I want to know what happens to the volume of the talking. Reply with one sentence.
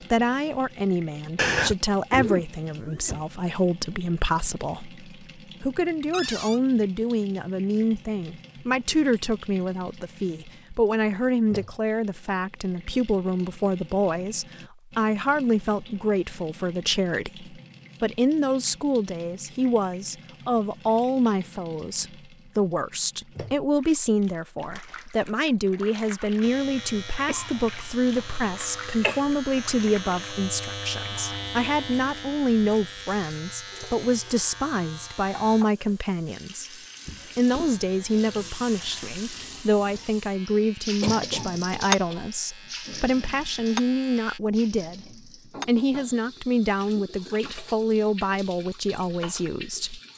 The volume of the talking stays about the same.